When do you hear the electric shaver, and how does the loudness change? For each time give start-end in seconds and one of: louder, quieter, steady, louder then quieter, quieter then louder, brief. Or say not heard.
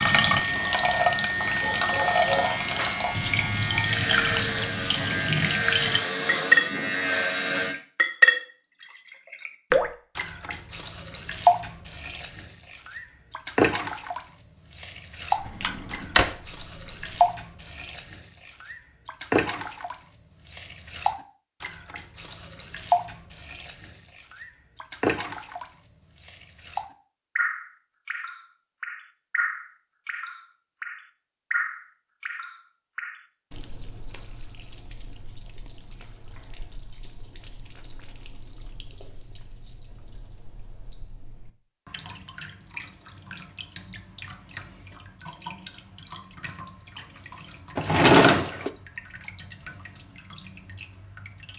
0.0-7.8 steady.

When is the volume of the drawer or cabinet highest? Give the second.
48 s.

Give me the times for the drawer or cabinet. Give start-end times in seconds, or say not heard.
15.4-16.4, 47.8-48.7.